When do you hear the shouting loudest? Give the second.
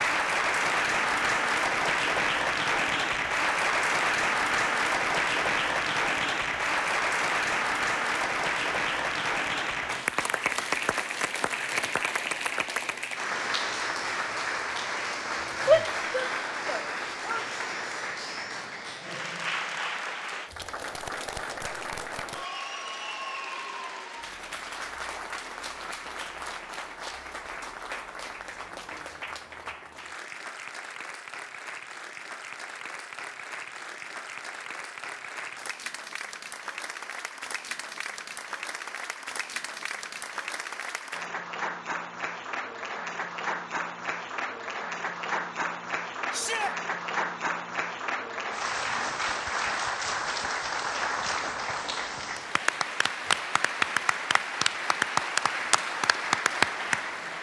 16 s.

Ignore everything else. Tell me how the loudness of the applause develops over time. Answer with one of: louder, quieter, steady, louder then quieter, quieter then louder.
quieter then louder.